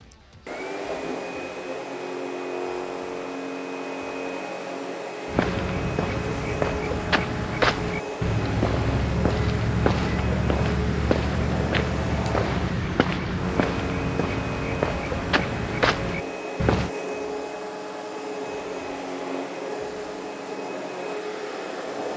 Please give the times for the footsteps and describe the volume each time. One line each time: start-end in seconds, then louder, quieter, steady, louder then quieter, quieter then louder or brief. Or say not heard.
5.2-16.9 steady.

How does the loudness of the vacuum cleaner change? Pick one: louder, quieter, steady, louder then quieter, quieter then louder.
steady.